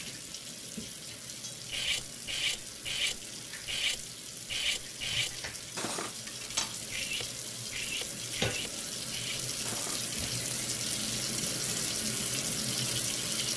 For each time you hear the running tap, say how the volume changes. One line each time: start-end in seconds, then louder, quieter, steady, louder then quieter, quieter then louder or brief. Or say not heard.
0.0-13.5 louder.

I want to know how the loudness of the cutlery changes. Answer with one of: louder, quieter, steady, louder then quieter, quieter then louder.
quieter.